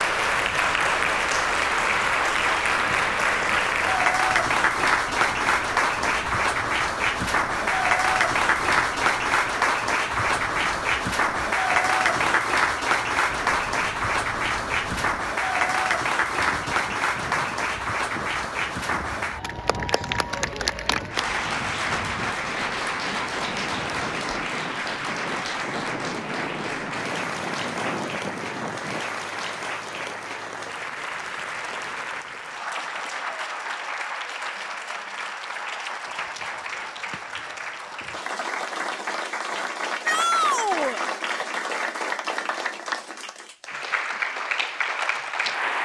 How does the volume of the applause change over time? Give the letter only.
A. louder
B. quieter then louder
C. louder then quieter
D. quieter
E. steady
D.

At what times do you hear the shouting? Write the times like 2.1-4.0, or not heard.
40.0-41.0.